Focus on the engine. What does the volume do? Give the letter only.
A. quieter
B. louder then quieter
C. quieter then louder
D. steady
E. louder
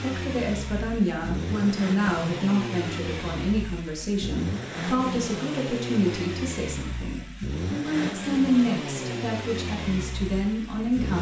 D.